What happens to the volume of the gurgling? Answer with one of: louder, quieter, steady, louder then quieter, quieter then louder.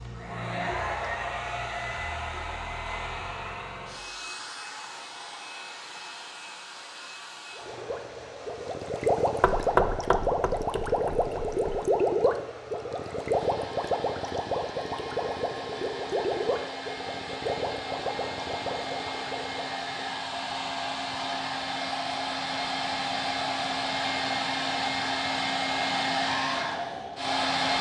quieter.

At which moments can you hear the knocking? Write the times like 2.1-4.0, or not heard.
9.4-11.8.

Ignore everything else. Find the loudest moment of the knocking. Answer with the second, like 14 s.
10 s.